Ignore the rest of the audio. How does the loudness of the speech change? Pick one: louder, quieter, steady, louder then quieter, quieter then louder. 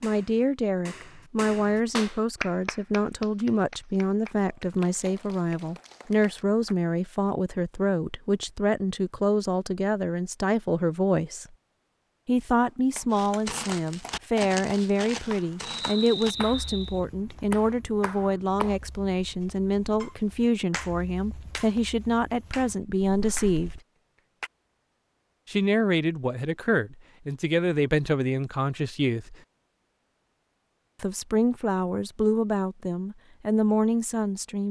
steady.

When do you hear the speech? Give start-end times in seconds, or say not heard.
0.0-11.4, 12.2-23.8, 25.4-29.4, 31.0-34.6.